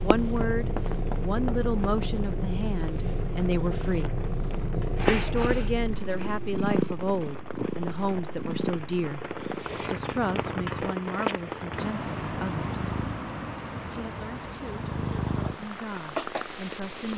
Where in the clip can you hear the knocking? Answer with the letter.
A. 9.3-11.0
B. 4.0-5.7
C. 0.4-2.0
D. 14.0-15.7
C.